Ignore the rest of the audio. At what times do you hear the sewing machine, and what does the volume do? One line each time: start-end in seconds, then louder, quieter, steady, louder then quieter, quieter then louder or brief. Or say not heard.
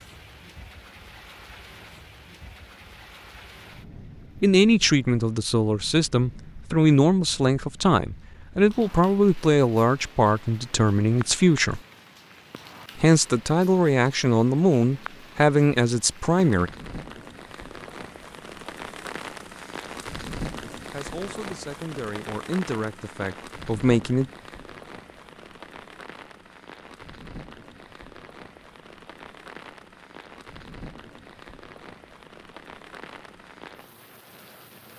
not heard.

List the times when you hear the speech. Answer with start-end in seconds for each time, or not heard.
4.4-11.8, 12.9-16.7, 20.9-24.2.